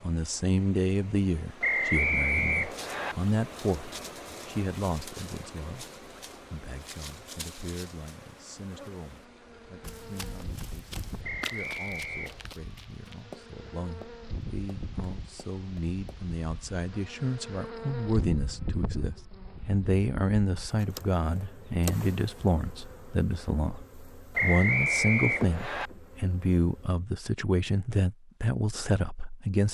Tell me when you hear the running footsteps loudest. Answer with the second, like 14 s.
12 s.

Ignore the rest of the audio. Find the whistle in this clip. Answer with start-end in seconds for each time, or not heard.
1.6-3.1, 11.2-12.5, 24.4-25.9.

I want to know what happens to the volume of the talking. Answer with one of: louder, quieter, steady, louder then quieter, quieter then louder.
quieter then louder.